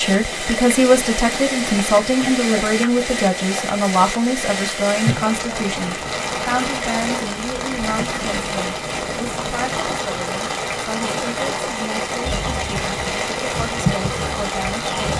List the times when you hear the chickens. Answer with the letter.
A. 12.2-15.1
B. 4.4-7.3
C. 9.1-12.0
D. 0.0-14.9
A.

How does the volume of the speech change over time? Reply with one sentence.
The volume of the speech goes down.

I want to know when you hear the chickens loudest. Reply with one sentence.
The volume of the chickens peaks at 14 seconds.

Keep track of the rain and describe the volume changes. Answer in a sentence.
The volume of the rain stays about the same.